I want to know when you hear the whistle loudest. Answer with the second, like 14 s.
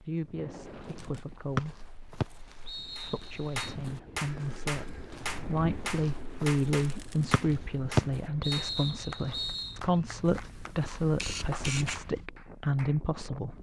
8 s.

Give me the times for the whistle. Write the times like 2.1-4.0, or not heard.
1.6-3.8, 7.3-9.8.